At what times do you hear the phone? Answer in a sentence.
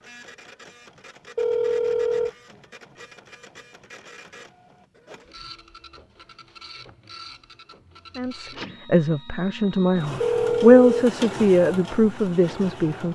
The phone can be heard from 1.4 to 2.3 s and from 10.2 to 11.1 s.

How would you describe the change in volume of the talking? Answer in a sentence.
The volume of the talking goes up, then down.